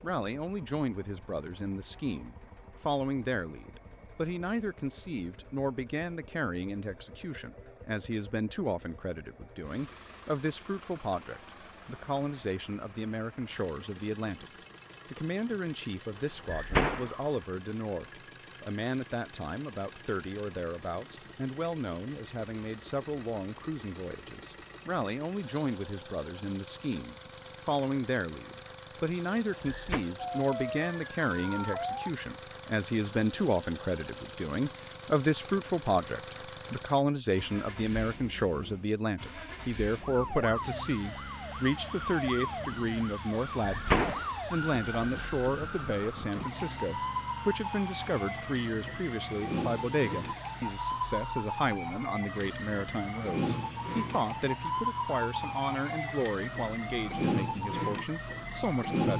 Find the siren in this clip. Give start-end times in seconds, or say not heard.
30.3-32.1, 40.0-59.1.